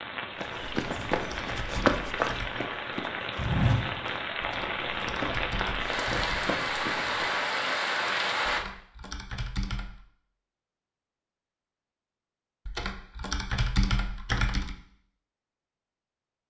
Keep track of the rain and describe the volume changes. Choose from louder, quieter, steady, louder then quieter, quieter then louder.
louder.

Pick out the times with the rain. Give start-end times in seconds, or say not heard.
0.0-8.7.